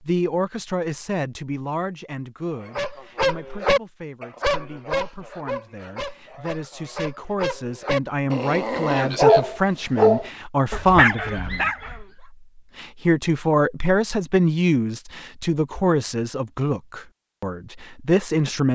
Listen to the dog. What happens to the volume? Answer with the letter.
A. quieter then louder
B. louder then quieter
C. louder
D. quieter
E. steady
A.